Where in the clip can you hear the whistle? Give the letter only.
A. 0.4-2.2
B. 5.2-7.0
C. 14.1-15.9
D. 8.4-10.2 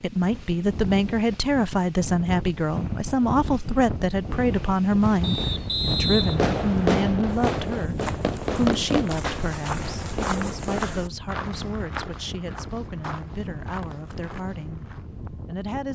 B.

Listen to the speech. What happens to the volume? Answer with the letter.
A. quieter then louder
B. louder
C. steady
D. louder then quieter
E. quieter
E.